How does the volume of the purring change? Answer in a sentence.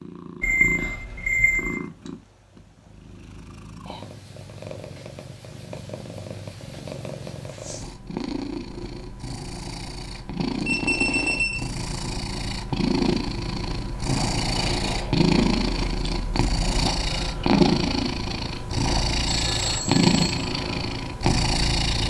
The volume of the purring goes up.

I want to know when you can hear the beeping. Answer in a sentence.
The beeping can be heard from 0.4 to 1.8 s, from 10.7 to 11.6 s and from 19.2 to 20.4 s.